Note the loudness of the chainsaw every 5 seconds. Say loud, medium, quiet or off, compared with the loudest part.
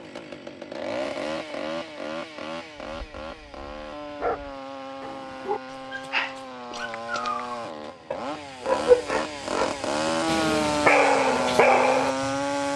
medium, medium, loud.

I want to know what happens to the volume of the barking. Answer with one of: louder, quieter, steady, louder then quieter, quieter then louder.
louder.